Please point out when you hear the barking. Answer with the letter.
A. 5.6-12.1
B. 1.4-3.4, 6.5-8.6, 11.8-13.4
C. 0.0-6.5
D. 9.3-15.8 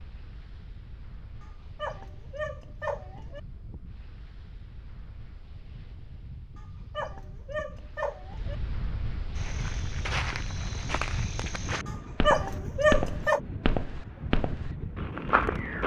B.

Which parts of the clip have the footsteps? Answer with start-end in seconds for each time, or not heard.
9.3-15.8.